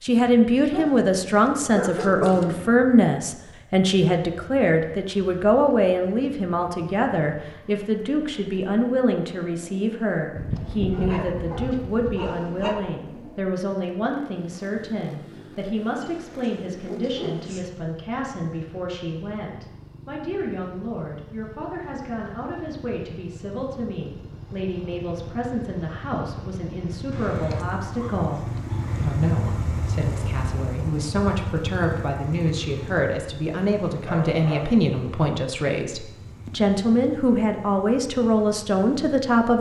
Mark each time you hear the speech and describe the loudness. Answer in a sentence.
You can hear the speech from 0.0 to 39.5 s, getting quieter then louder.